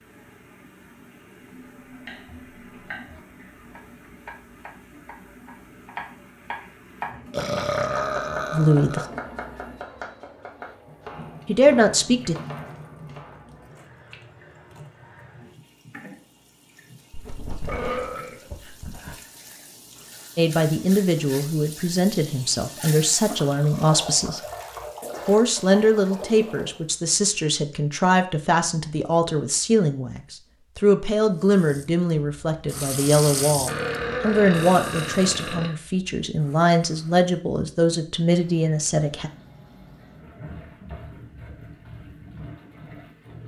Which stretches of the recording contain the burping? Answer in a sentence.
You can hear the burping from 7.3 to 9.1 s, from 17.1 to 19.1 s and from 33.6 to 35.7 s.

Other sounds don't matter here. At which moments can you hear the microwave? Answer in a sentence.
You can't hear the microwave here.